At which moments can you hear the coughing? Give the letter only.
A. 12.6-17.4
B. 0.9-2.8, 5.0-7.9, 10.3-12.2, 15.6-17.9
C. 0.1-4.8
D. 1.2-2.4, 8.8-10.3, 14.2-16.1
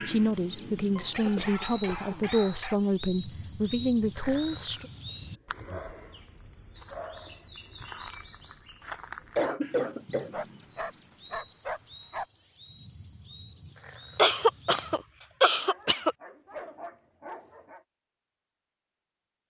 D.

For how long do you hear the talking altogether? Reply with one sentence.
The talking can be heard for 5 seconds in total.